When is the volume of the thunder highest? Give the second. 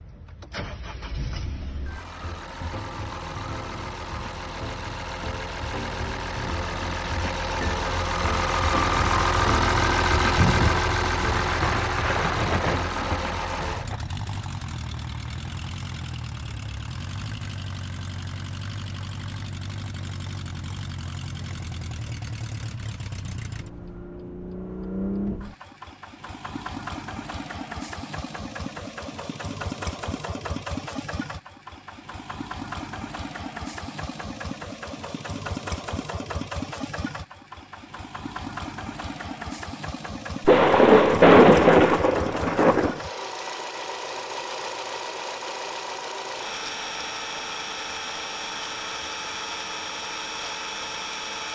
41 s.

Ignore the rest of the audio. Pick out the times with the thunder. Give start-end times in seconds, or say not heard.
10.3-14.0, 40.5-43.0.